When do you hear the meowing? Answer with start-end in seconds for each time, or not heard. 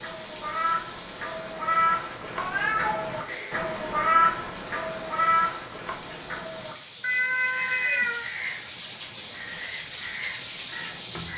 2.4-3.6, 7.0-8.2.